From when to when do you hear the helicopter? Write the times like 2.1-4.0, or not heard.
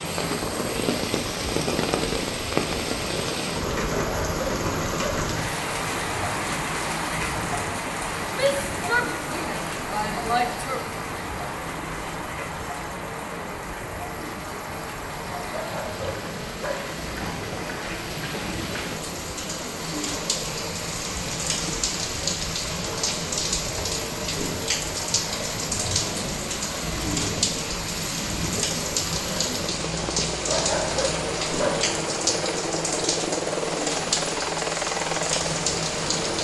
0.0-36.3.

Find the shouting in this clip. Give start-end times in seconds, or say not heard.
8.3-10.8.